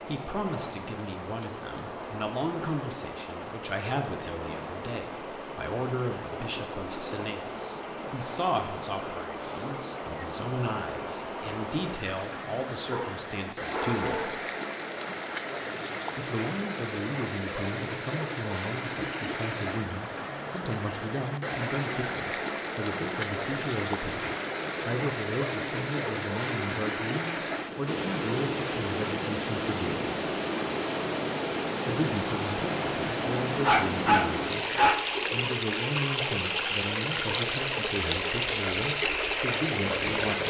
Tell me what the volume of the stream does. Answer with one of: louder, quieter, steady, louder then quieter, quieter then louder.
louder.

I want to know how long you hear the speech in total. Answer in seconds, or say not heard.
37 s.